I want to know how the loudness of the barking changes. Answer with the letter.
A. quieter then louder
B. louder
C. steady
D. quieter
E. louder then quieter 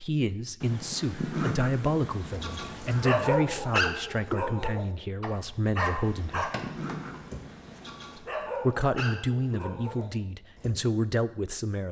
D.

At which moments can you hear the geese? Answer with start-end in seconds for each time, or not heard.
0.6-3.2, 6.0-8.2.